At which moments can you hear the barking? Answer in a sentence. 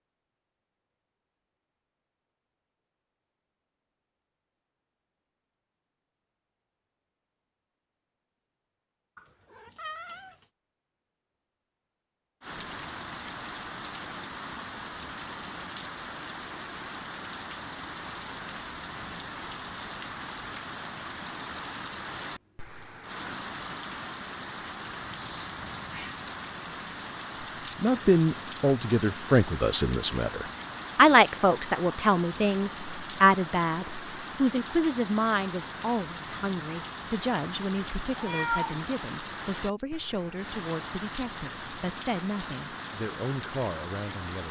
The barking can't be heard in this clip.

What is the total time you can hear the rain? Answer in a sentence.
The rain can be heard for 32 seconds in total.